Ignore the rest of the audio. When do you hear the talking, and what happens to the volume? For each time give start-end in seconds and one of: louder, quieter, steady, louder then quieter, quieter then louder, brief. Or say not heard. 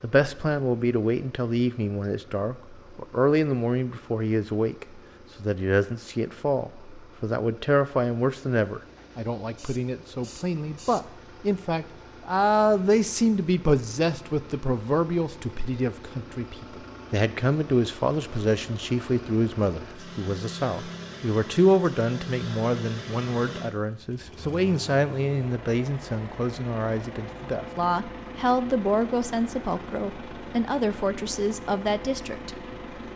0.0-32.5 steady.